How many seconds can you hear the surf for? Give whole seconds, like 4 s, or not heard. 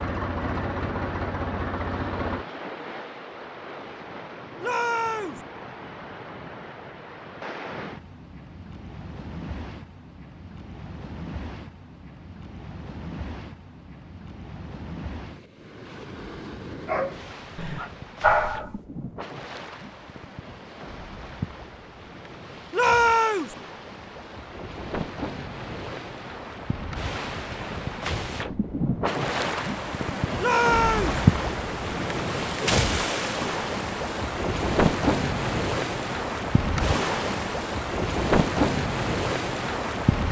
40 s.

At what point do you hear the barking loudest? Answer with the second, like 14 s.
18 s.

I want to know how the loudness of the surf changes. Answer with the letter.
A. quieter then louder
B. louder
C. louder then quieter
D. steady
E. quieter
B.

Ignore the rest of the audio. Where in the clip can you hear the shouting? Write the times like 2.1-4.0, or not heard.
4.6-5.4, 22.7-23.6, 30.4-31.2.